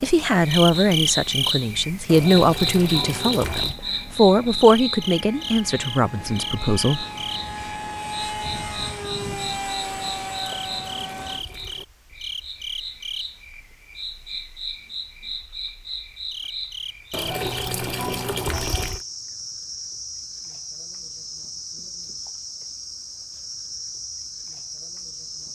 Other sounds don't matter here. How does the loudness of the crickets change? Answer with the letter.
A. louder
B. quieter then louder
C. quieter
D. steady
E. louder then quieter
C.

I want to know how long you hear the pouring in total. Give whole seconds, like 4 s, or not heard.
5 s.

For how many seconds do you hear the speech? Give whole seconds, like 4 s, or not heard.
7 s.